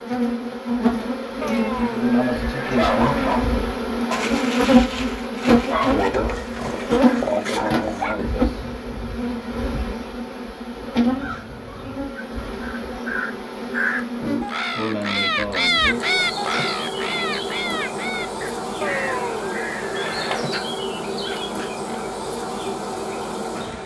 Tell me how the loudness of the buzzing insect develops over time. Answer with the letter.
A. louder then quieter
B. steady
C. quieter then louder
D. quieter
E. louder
D.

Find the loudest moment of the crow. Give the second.
16 s.